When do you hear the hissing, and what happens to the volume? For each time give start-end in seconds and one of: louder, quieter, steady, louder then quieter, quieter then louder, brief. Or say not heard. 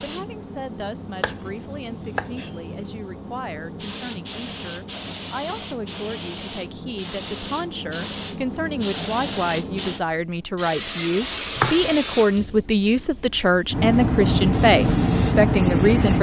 0.0-16.1 louder.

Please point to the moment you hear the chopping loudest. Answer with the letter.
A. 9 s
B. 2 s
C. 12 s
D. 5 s
C.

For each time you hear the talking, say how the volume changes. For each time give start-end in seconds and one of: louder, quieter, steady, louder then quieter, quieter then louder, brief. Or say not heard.
0.0-16.1 louder.